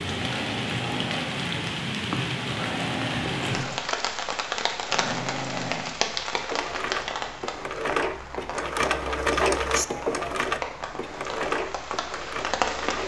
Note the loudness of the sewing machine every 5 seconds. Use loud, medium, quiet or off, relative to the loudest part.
medium, loud, loud.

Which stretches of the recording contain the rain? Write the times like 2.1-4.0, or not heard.
0.0-13.0.